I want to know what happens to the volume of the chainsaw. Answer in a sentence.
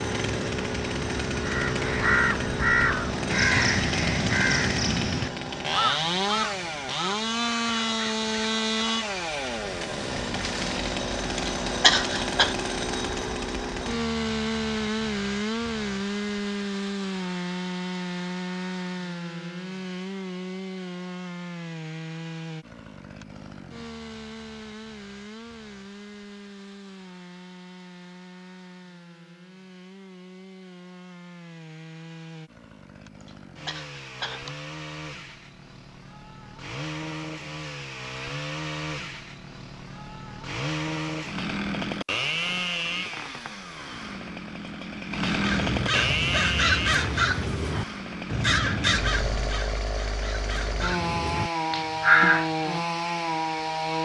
The loudness of the chainsaw goes down, then up.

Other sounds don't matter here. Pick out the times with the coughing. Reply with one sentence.
The coughing can be heard from 11.3 to 12.6 s and from 33.2 to 34.6 s.